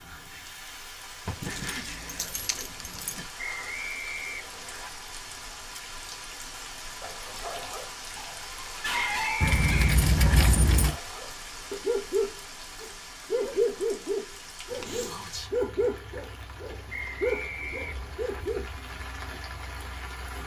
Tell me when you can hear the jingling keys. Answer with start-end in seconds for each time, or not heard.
1.2-3.2, 9.4-10.9, 14.7-17.1.